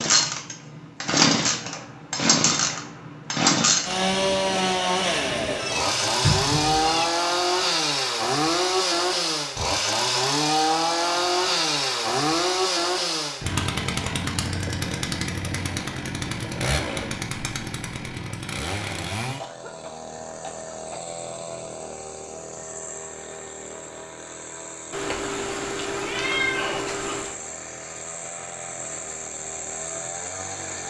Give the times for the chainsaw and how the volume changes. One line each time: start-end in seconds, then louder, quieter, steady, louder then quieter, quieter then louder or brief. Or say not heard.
0.0-30.8 quieter.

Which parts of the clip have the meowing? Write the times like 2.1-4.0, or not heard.
5.5-7.0, 24.9-27.4.